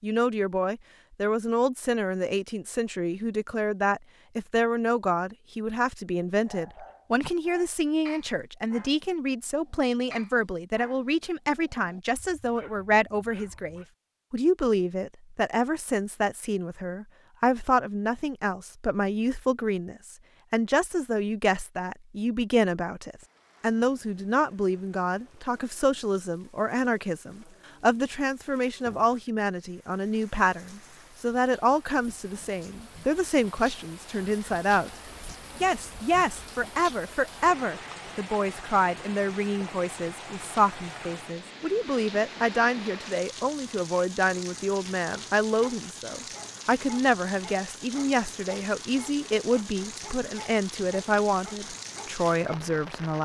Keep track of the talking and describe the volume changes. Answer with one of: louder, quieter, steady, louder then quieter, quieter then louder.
steady.